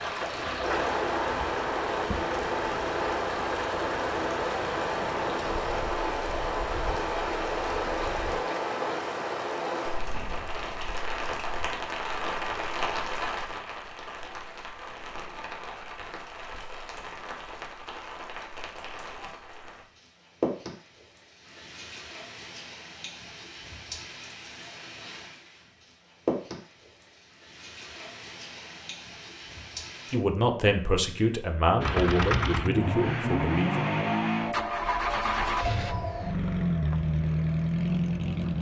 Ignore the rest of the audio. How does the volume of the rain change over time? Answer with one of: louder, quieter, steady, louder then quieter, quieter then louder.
quieter.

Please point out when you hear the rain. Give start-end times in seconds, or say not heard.
0.0-30.2.